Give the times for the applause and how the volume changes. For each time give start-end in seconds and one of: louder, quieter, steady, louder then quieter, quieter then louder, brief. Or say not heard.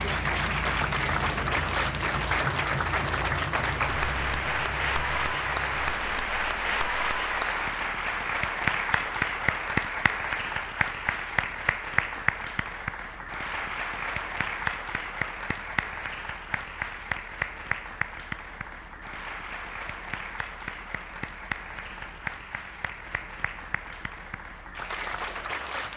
0.0-25.9 quieter.